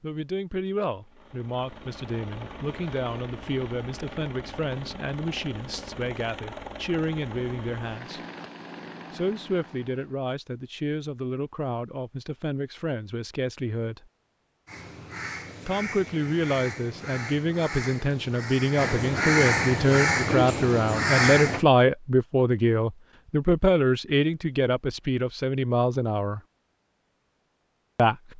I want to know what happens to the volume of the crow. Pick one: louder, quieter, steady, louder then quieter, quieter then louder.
louder.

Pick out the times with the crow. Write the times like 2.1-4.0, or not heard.
14.7-21.6.